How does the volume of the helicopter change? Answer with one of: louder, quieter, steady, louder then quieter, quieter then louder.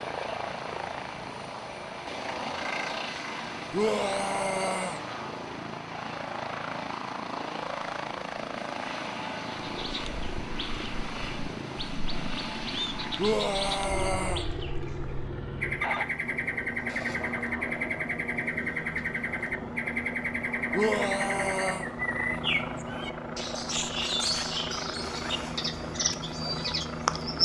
steady.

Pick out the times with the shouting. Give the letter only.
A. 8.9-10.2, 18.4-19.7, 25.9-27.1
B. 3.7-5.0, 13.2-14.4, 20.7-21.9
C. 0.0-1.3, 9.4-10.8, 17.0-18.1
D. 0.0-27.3
B.